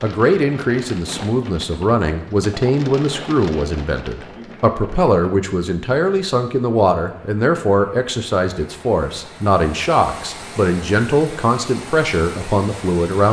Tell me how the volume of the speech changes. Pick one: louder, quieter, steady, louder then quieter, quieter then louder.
steady.